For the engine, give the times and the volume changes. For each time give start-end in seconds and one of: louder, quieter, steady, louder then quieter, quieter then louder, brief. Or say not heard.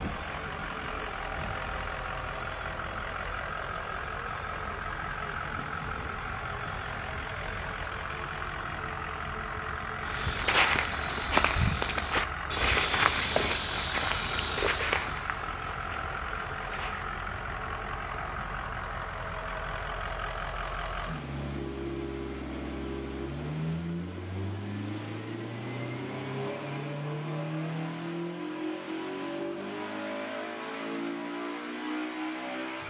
0.0-32.8 steady.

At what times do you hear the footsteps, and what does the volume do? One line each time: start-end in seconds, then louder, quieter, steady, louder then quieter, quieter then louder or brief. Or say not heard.
10.0-17.1 quieter.